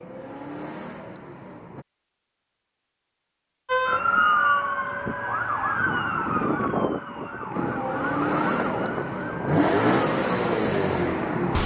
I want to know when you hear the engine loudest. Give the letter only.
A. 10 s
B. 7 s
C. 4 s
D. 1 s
A.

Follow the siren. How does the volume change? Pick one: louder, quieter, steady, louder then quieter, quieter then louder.
quieter.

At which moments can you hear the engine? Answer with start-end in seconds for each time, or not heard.
0.0-1.9, 7.5-11.6.